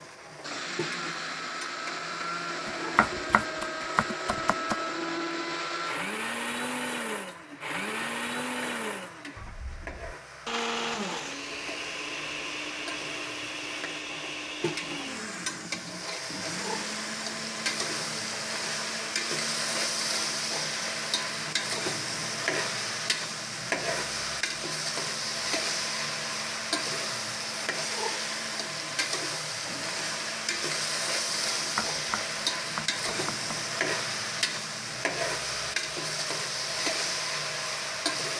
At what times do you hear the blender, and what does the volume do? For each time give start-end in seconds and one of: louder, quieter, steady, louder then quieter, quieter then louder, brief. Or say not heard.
0.0-38.2 quieter.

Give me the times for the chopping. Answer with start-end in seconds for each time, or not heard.
2.6-4.8, 31.4-33.5.